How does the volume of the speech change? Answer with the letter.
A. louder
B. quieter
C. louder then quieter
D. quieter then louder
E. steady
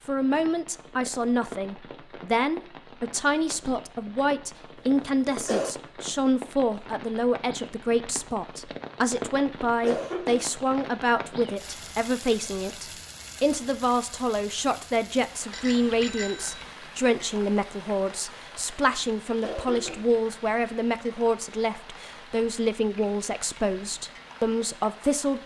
E.